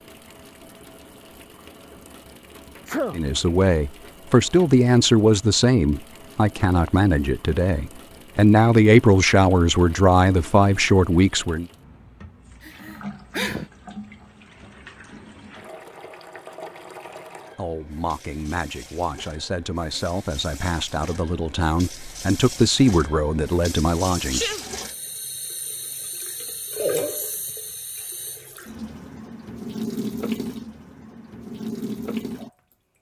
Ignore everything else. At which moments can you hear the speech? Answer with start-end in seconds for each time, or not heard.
3.1-11.7, 17.6-24.5.